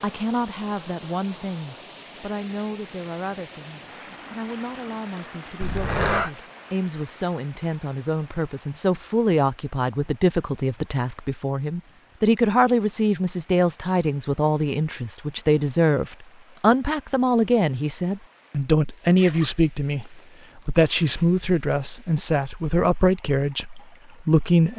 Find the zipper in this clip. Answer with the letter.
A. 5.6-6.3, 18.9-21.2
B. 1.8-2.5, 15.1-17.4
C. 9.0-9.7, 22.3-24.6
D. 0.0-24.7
A.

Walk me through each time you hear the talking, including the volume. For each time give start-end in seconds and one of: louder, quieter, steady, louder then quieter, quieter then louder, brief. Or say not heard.
0.0-24.7 louder.